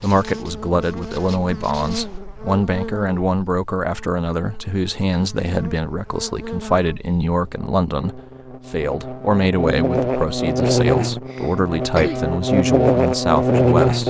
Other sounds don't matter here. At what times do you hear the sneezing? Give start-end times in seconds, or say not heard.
11.1-12.3.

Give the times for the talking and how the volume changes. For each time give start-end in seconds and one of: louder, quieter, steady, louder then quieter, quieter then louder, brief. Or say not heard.
0.0-14.0 steady.